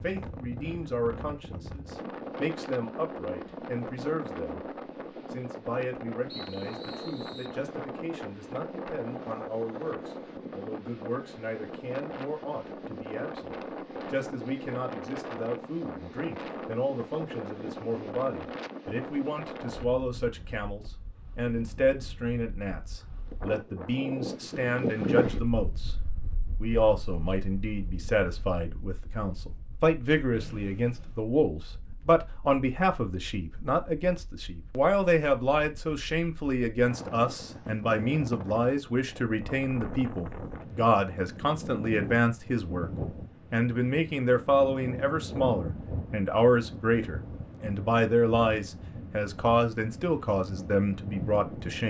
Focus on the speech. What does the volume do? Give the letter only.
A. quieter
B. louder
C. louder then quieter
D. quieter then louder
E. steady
B.